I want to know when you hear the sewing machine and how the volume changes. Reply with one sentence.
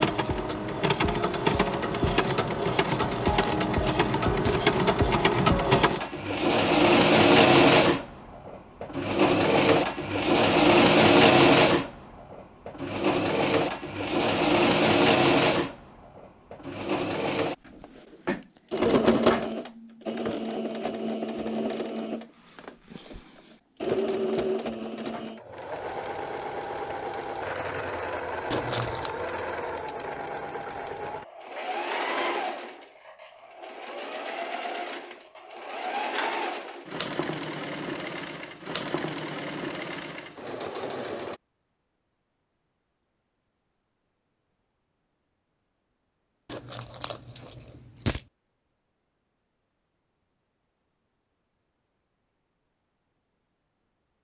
The sewing machine can be heard from 0.0 to 41.4 s, getting quieter.